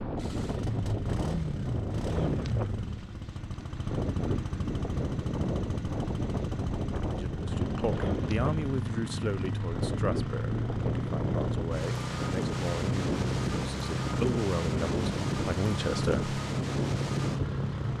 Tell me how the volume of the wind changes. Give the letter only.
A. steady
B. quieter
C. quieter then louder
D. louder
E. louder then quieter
A.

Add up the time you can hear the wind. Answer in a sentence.
You can hear the wind for 18 seconds altogether.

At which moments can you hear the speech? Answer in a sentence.
The speech can be heard from 7.0 to 16.4 s.